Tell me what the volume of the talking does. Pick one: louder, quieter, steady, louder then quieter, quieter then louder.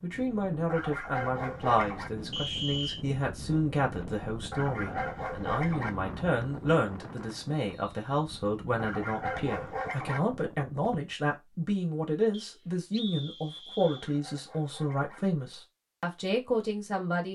steady.